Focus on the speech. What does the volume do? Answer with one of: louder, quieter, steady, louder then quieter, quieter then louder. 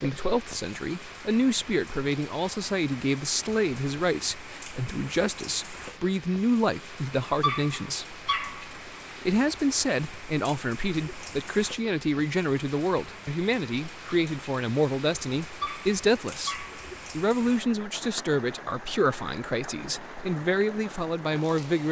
steady.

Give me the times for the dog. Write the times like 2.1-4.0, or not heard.
7.4-8.7, 15.6-16.9.